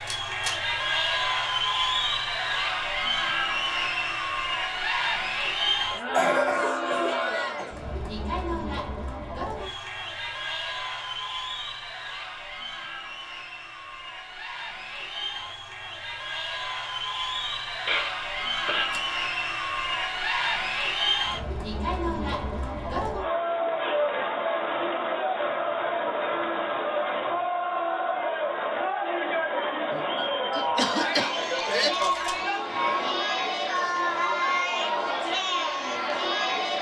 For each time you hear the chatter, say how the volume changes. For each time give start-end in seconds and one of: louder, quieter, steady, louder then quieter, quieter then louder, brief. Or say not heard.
0.0-36.7 quieter then louder.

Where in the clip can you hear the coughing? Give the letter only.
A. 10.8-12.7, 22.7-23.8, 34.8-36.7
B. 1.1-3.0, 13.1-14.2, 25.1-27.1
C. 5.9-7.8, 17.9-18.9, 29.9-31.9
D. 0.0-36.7
C.